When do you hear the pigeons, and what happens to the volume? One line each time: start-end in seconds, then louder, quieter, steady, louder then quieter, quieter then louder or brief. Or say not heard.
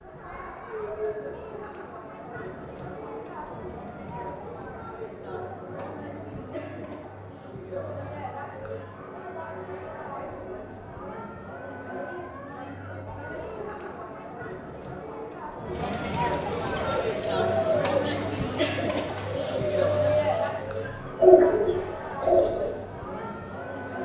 16.7-22.8 quieter then louder.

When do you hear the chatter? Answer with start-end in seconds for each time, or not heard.
0.0-24.0.